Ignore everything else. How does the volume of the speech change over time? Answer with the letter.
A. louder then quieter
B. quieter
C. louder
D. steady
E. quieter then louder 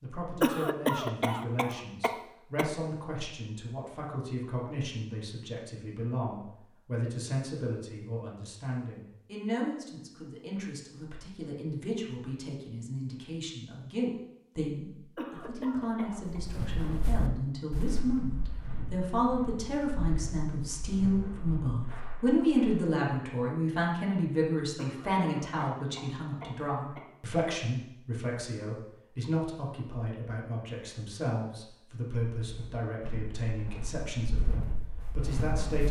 A.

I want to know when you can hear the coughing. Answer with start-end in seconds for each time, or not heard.
0.4-2.6, 15.2-16.4, 24.8-27.1.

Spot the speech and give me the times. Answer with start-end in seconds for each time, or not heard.
0.0-35.8.